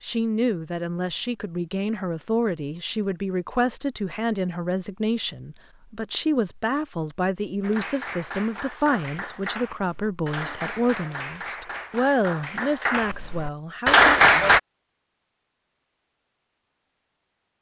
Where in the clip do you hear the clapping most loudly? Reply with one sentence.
The volume of the clapping peaks at 14 seconds.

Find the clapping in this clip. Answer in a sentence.
The clapping can be heard from 7.6 to 14.6 s.